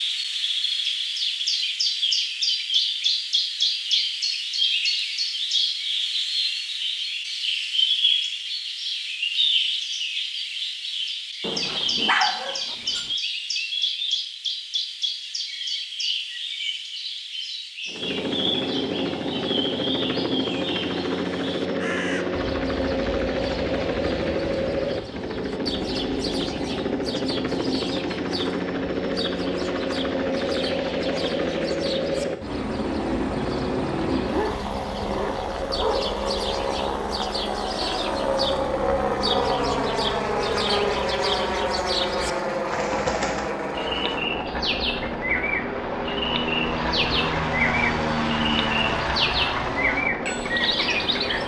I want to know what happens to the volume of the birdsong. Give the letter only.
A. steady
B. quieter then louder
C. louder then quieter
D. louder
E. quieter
B.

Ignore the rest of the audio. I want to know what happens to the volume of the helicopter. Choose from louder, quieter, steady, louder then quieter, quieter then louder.
steady.